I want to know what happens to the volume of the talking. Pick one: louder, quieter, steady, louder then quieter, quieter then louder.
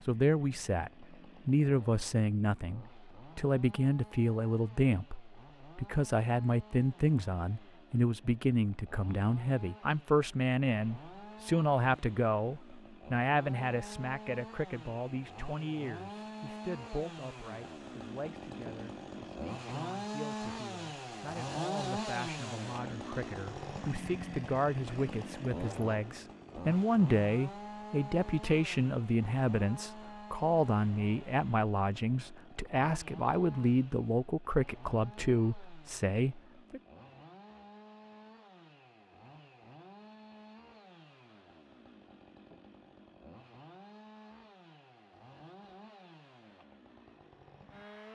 quieter then louder.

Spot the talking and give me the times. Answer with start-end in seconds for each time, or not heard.
0.1-36.8.